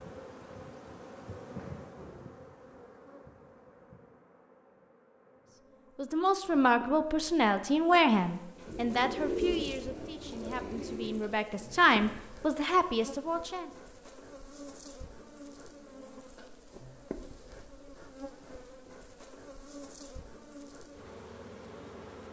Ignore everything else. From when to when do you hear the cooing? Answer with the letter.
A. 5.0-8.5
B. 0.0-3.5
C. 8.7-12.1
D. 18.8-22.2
C.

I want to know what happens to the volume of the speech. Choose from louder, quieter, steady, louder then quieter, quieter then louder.
quieter then louder.